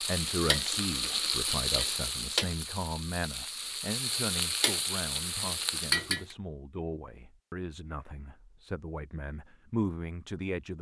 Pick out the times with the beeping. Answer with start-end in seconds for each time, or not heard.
not heard.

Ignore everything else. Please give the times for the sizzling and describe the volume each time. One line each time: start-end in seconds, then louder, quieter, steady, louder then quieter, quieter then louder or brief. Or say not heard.
0.0-6.3 quieter then louder.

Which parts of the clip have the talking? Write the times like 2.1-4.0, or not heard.
0.0-10.7.